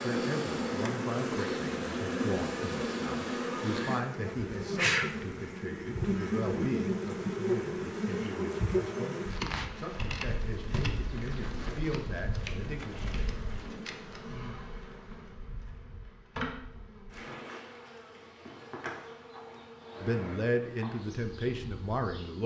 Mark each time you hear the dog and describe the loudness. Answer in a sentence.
The dog can't be heard in this clip.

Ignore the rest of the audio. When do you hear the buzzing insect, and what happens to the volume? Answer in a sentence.
The buzzing insect can be heard from 0.0 to 22.4 s, getting quieter.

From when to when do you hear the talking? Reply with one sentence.
You can hear the talking from 0.0 to 12.9 s and from 20.0 to 22.4 s.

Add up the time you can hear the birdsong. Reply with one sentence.
The birdsong can't be heard in this clip.